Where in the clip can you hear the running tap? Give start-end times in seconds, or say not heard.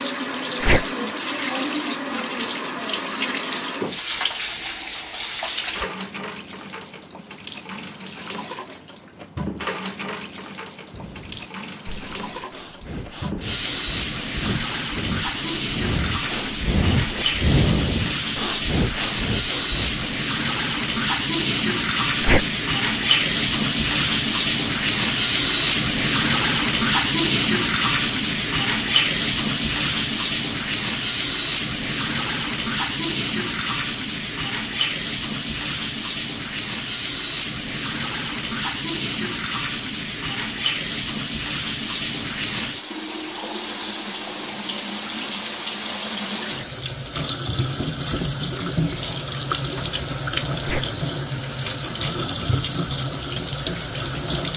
0.0-54.5.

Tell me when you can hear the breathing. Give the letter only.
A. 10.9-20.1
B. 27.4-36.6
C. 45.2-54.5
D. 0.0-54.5
A.